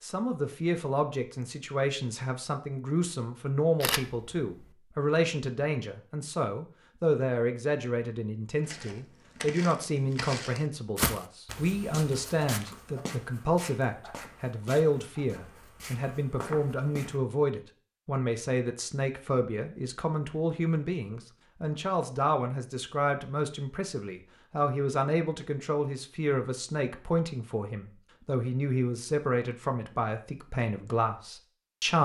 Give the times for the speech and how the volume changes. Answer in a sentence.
You can hear the speech from 0.0 to 32.0 s, at a steady volume.